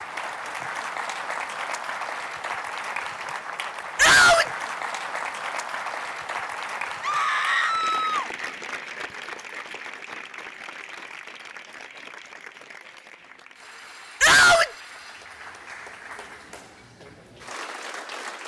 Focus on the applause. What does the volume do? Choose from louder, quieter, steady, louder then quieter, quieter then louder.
quieter.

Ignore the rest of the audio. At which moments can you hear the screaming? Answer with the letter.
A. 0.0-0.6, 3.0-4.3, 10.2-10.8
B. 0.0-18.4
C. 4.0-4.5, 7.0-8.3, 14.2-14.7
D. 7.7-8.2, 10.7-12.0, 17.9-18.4
C.